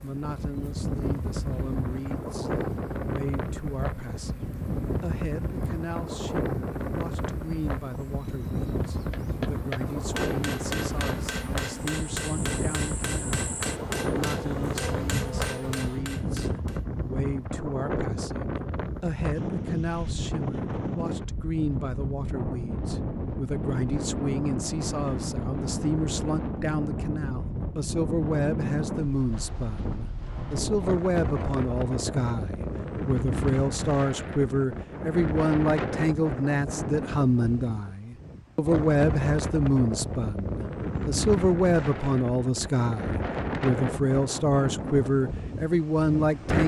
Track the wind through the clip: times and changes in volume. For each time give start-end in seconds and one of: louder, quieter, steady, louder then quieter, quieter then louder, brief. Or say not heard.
0.0-46.6 steady.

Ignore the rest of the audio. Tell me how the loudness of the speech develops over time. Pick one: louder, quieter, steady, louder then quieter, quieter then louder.
louder.